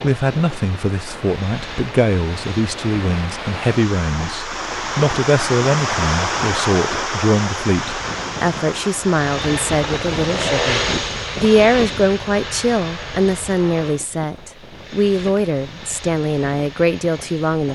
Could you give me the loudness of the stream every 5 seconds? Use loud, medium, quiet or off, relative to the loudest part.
medium, loud, off, off.